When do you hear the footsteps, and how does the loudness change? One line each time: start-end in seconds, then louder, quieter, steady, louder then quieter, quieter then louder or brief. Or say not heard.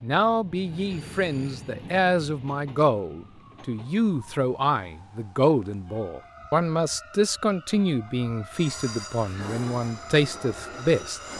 not heard.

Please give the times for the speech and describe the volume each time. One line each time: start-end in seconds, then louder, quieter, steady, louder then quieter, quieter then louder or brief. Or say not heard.
0.0-11.2 steady.